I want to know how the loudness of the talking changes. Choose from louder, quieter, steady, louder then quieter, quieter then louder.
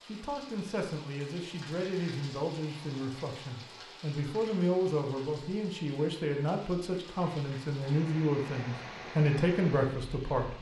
louder.